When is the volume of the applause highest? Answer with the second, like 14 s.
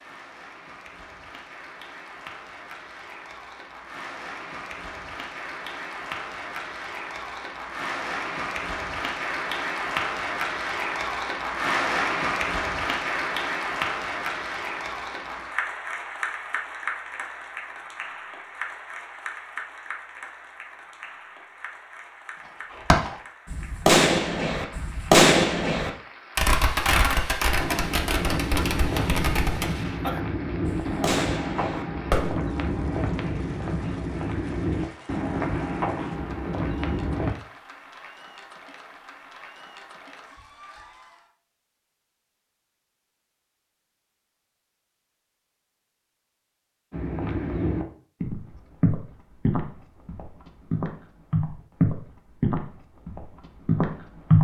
12 s.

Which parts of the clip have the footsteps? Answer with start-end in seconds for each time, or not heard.
27.6-37.4, 46.9-54.3.